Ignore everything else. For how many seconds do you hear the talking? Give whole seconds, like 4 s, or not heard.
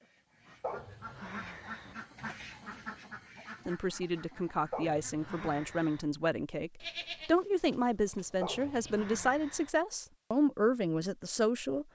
8 s.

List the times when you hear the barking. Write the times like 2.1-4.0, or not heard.
0.6-1.9, 4.7-6.0, 8.4-9.7.